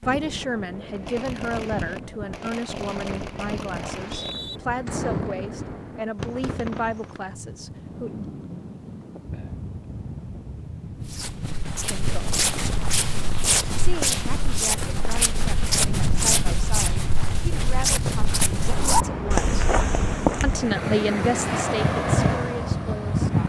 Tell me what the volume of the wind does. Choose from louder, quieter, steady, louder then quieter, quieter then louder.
louder.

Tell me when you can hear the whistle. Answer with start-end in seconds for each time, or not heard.
3.9-4.6.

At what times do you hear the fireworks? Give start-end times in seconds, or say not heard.
0.9-7.2.